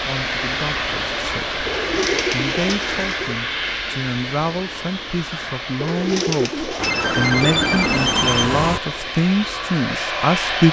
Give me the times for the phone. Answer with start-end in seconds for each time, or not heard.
6.8-8.8.